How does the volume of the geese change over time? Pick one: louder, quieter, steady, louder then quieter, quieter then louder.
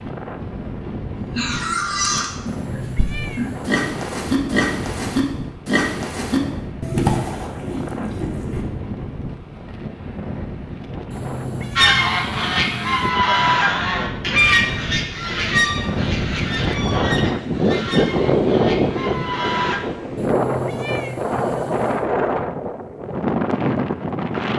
quieter.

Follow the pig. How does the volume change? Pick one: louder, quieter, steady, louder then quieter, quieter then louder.
steady.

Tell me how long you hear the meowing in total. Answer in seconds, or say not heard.
5 s.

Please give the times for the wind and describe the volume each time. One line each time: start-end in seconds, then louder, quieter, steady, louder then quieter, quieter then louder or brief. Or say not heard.
0.0-24.5 louder.